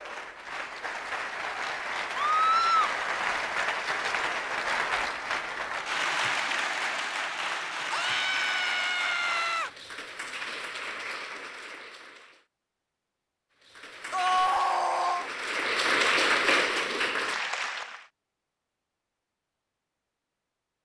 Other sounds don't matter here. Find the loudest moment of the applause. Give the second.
16 s.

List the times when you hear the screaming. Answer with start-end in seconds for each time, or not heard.
2.1-3.0, 7.9-9.7, 14.1-15.3.